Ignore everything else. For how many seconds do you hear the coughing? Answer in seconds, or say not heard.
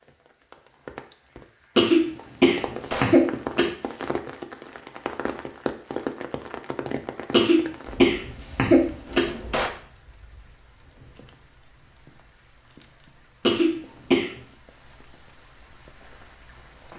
5 s.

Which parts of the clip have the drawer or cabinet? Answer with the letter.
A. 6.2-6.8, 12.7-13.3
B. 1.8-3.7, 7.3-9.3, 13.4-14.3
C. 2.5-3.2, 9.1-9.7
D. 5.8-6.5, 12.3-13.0
C.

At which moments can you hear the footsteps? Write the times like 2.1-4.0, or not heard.
not heard.